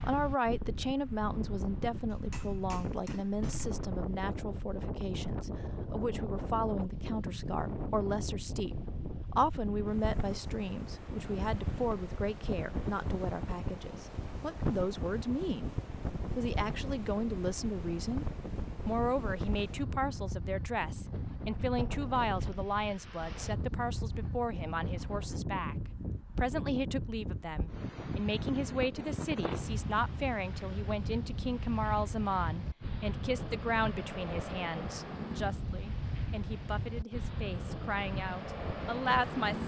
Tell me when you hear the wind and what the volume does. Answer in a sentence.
The wind can be heard from 0.0 to 39.6 s, at a steady volume.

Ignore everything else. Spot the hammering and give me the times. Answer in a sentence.
The hammering can be heard from 2.1 to 3.8 s.